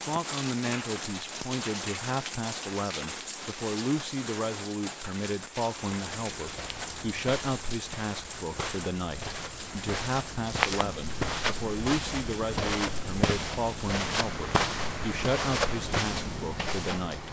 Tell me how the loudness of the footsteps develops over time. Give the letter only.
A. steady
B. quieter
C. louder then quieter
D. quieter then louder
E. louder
E.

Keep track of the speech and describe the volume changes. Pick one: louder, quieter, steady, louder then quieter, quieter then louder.
steady.